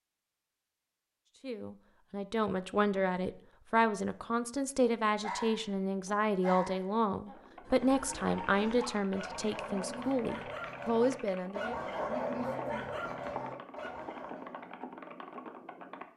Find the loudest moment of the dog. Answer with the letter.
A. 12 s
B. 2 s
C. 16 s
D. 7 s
A.